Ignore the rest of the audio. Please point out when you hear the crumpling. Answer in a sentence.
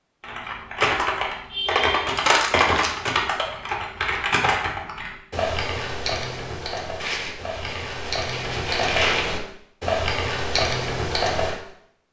The crumpling can be heard from 2.1 to 3.0 s and from 7.0 to 9.3 s.